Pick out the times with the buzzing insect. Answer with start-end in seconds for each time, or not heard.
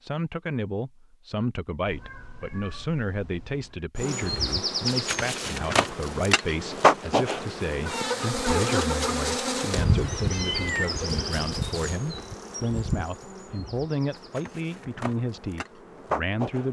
4.0-16.6.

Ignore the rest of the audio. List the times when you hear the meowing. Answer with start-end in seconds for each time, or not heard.
1.9-3.9, 9.9-11.1.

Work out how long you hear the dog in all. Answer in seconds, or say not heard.
not heard.